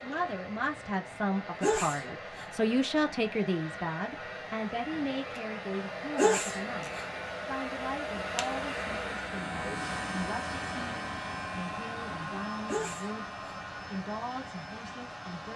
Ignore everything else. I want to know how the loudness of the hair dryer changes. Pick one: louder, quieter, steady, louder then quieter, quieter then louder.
louder then quieter.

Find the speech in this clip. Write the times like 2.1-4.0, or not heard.
0.0-15.5.